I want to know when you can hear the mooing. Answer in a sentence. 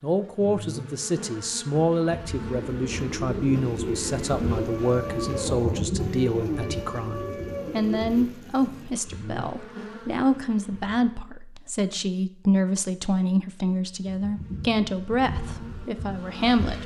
You can hear the mooing from 3.5 to 8.9 s.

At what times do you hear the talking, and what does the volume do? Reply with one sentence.
The talking can be heard from 0.0 to 16.8 s, at a steady volume.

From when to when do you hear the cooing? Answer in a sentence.
You can hear the cooing from 2.4 to 8.4 s.